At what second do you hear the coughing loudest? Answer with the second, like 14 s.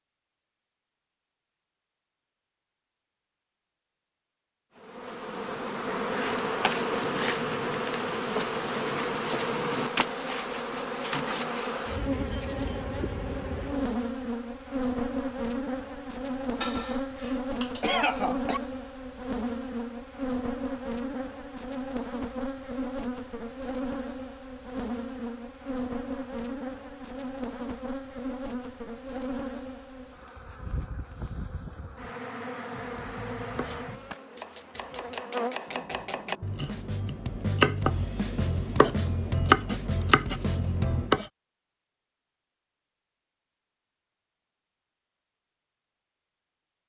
18 s.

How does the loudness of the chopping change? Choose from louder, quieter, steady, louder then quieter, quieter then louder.
louder.